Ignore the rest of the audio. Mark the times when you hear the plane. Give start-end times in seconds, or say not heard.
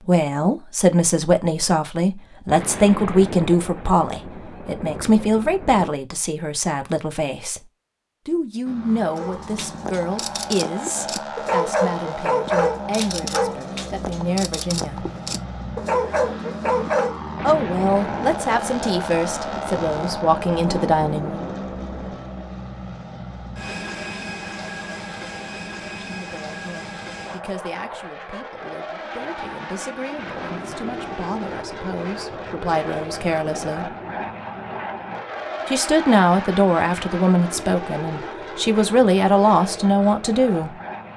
8.7-41.1.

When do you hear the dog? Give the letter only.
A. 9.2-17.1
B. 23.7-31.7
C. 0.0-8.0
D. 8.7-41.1
A.